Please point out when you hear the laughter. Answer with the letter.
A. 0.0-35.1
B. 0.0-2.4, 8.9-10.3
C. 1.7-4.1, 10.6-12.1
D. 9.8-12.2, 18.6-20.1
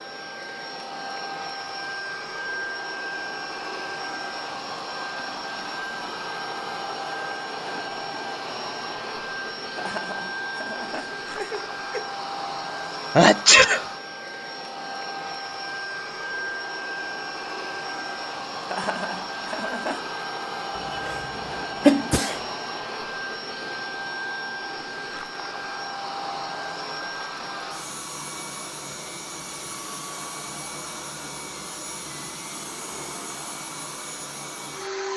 D.